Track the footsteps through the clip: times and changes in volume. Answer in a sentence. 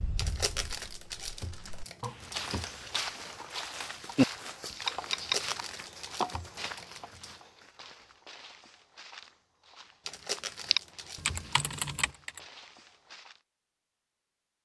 You can hear the footsteps from 2.1 to 13.4 s, getting quieter.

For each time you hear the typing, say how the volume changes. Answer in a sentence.
You can hear the typing from 0.0 to 5.6 s, getting louder then quieter; and briefly from 10.7 to 12.4 s.